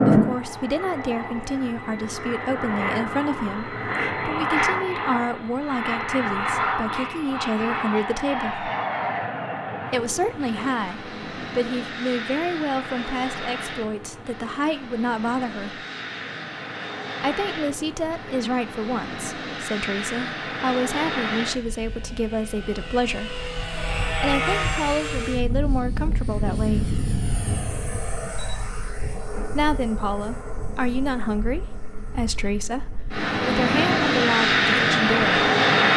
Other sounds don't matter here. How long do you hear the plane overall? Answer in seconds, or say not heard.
36 s.